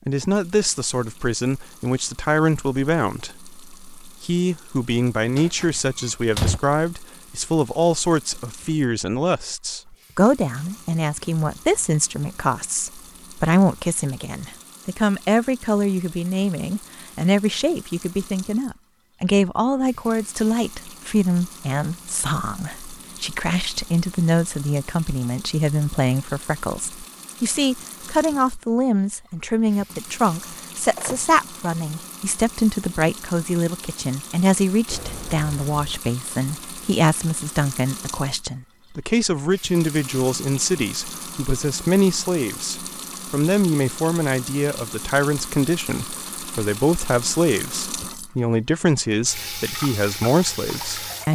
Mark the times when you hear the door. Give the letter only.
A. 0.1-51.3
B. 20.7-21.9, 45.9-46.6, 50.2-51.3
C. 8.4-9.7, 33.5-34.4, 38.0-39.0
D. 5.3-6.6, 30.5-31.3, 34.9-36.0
D.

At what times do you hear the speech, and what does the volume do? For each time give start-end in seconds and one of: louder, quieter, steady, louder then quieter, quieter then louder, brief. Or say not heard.
0.1-51.3 steady.